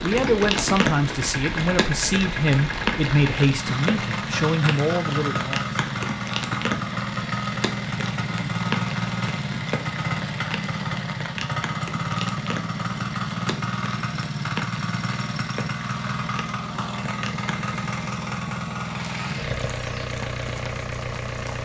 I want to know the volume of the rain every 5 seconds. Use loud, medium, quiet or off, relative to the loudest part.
loud, loud, medium, medium, quiet.